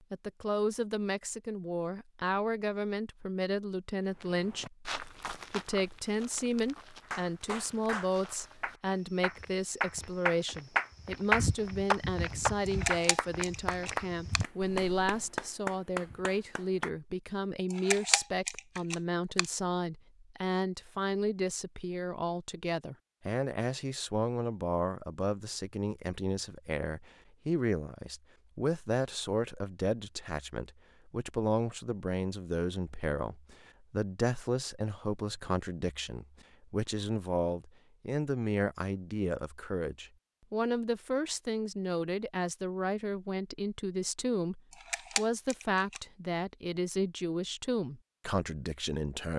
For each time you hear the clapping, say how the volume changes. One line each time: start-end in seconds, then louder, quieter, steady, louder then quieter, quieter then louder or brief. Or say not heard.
7.0-16.9 louder then quieter.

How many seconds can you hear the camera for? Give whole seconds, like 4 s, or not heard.
5 s.